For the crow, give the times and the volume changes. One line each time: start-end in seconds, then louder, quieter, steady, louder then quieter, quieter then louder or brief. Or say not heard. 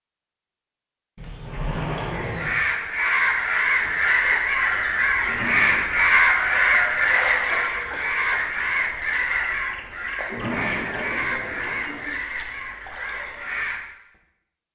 2.0-13.8 quieter.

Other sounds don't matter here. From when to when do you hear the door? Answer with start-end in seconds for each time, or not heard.
1.1-2.6, 5.2-6.0, 10.2-12.2.